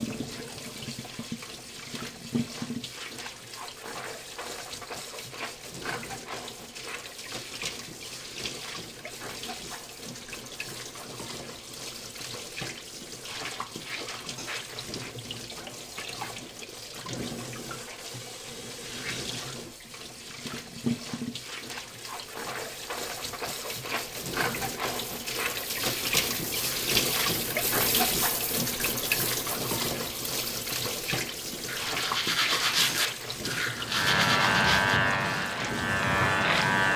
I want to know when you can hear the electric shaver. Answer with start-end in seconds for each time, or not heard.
33.9-36.9.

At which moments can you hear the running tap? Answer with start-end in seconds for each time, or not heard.
0.0-36.9.